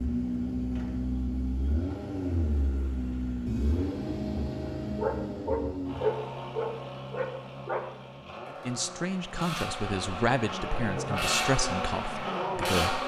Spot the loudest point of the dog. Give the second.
6 s.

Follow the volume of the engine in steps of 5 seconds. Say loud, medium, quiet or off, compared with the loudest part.
loud, medium, loud.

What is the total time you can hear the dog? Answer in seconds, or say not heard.
3 s.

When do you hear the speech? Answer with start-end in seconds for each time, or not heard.
8.7-13.0.